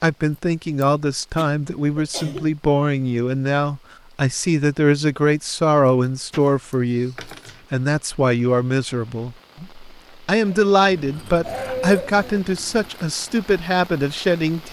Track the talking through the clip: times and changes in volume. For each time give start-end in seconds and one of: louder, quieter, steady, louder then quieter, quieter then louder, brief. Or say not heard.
0.0-14.6 steady.